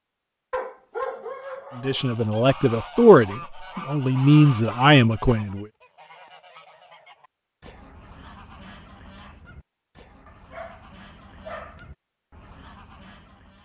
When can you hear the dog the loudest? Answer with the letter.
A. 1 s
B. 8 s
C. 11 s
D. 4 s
A.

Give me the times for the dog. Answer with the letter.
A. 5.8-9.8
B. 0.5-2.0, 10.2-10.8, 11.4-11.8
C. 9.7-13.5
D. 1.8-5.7
B.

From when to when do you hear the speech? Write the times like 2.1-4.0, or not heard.
1.8-5.7.